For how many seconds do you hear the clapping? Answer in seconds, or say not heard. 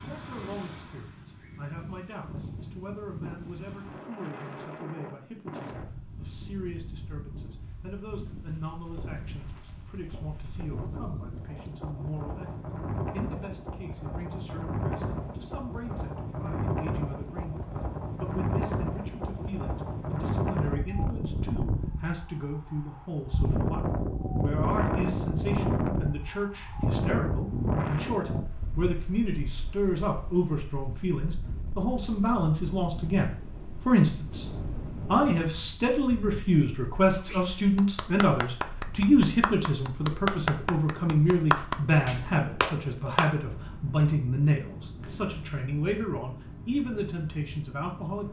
6 s.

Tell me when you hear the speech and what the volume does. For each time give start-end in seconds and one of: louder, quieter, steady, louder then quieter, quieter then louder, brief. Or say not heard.
0.0-48.2 louder.